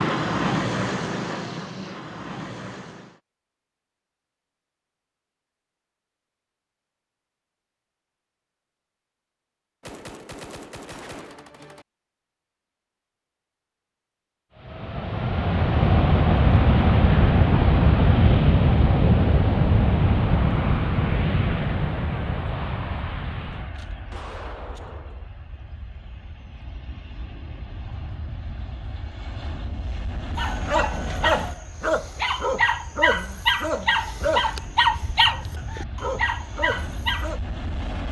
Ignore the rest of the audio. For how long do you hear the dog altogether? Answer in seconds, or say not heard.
7 s.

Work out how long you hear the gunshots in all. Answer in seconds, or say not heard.
4 s.